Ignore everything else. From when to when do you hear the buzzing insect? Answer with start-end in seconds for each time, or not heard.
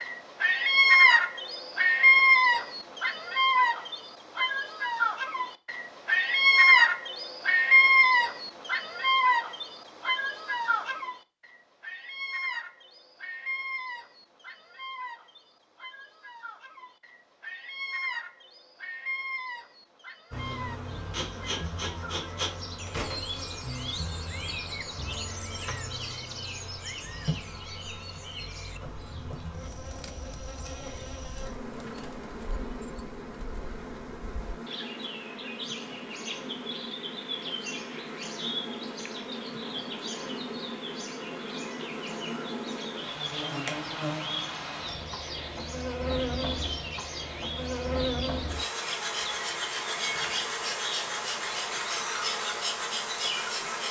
20.3-53.8.